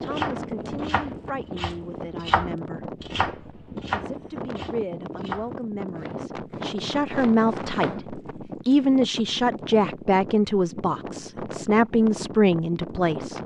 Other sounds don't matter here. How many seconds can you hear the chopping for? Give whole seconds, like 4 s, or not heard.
8 s.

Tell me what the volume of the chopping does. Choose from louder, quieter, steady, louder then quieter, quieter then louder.
louder then quieter.